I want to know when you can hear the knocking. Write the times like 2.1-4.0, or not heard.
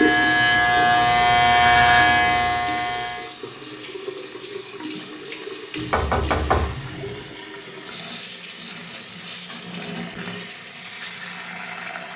5.8-7.2.